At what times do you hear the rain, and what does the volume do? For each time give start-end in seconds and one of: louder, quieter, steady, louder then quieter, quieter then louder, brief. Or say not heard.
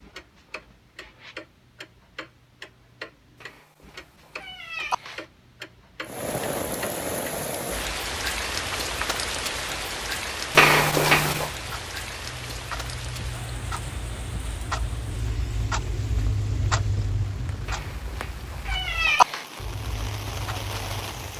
6.0-21.3 quieter then louder.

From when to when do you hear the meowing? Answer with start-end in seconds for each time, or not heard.
3.4-5.2, 10.5-11.5, 17.6-19.4.